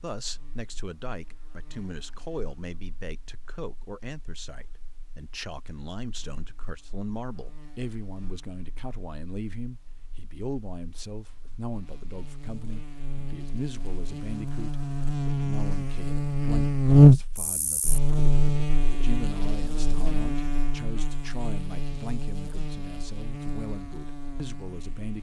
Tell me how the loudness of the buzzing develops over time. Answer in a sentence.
The volume of the buzzing goes up, then down.